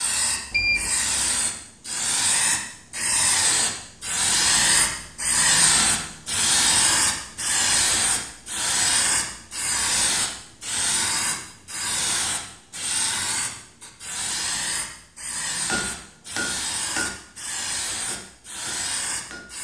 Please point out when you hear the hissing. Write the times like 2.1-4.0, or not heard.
0.0-19.5.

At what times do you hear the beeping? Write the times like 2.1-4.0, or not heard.
0.5-0.9.